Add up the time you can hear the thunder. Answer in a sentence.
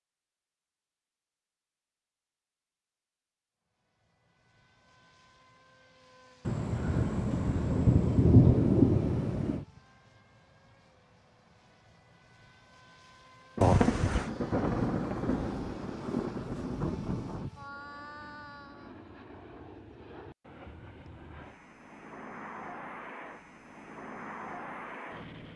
The thunder can be heard for 7 seconds in total.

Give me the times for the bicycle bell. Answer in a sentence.
The bicycle bell can be heard from 13.6 to 14.3 s.